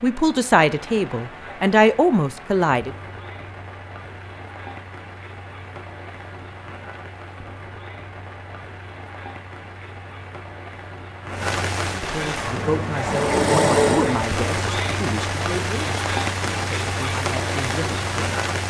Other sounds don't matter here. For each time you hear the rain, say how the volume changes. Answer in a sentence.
The rain can be heard from 0.0 to 18.6 s, getting louder.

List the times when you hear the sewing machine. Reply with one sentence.
The sewing machine can be heard from 12.3 to 14.3 s.